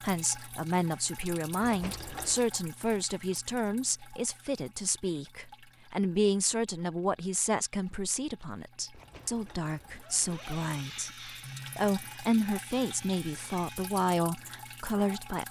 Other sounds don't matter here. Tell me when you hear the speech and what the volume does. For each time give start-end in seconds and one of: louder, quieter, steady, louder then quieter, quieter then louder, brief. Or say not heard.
0.0-15.4 steady.